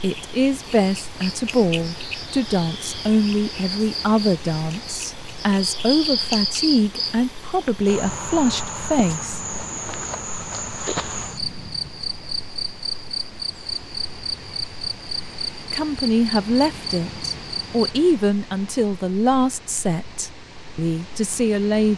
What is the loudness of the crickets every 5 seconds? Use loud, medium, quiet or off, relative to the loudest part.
medium, loud, loud, loud, off.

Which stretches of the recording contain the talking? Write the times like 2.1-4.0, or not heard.
0.0-9.4, 15.7-21.9.